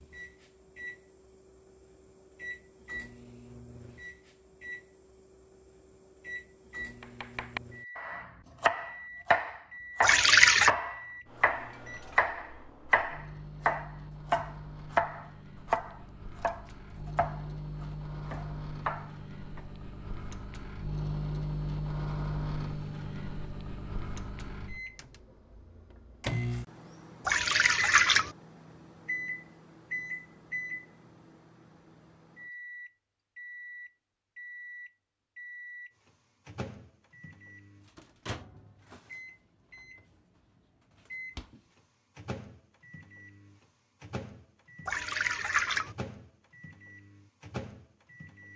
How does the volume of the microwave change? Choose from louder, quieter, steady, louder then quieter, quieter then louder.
louder then quieter.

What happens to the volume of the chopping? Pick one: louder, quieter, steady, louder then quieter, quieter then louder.
quieter.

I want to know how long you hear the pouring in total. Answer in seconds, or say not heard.
3 s.